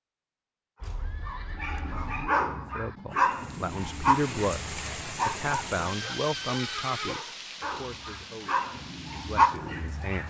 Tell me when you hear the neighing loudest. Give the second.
7 s.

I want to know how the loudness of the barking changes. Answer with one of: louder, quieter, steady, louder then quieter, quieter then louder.
quieter then louder.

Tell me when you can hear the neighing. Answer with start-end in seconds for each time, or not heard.
0.8-2.1, 6.0-7.2.